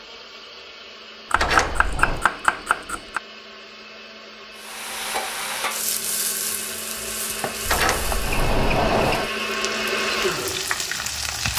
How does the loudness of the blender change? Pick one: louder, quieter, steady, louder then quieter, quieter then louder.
louder.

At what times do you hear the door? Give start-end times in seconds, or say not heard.
1.4-2.2, 7.7-9.3.